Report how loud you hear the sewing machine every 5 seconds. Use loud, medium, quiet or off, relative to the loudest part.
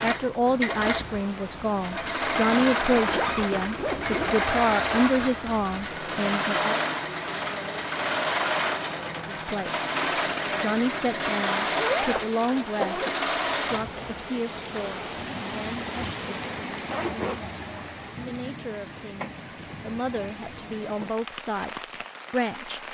loud, loud, loud, off, off.